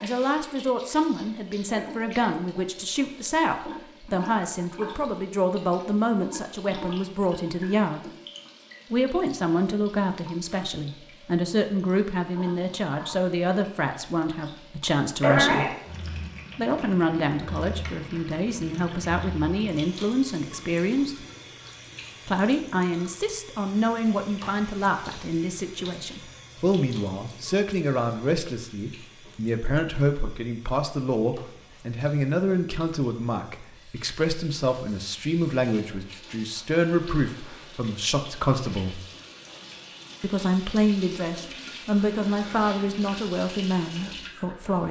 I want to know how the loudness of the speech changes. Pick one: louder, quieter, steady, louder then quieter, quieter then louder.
steady.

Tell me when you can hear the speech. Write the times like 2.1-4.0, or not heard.
0.0-8.1, 8.9-15.8, 16.6-21.2, 22.2-39.0, 40.2-44.8.